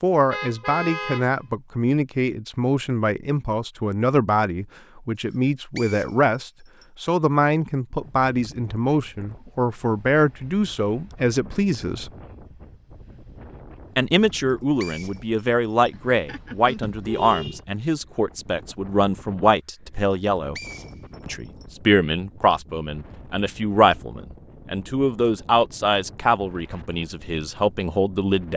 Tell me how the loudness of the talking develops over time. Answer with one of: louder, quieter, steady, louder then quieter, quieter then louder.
steady.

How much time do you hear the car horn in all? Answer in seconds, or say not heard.
3 s.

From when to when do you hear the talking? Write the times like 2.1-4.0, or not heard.
0.0-12.1, 13.9-20.6, 21.2-28.5.